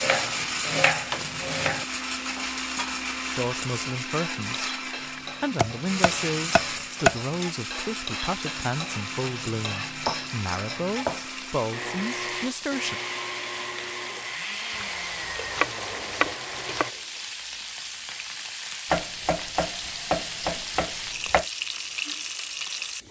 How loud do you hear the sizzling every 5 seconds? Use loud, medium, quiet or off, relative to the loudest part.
medium, medium, medium, loud, loud.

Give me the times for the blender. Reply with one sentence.
The blender can be heard from 0.0 to 16.9 s.